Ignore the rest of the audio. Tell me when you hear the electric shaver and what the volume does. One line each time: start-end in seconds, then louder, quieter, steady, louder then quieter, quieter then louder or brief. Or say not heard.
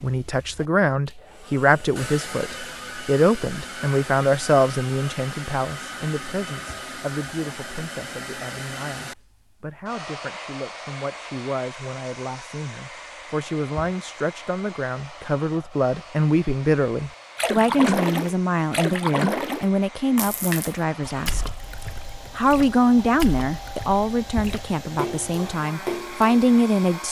not heard.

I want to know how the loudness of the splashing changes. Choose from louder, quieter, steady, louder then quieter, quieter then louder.
quieter then louder.